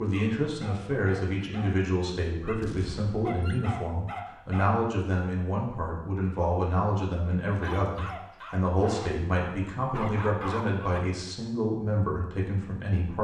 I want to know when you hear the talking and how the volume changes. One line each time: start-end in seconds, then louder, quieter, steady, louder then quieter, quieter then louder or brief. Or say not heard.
0.0-13.1 steady.